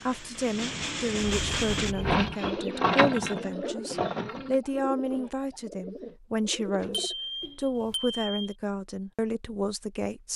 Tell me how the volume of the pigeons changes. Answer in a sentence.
The loudness of the pigeons goes down.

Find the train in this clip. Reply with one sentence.
The train can be heard from 0.0 to 1.9 s.